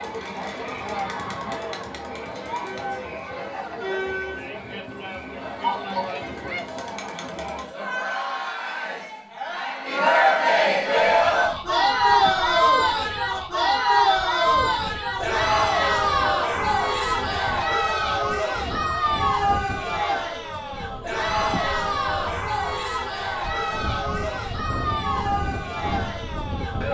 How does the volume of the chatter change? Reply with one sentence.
The volume of the chatter goes up, then down.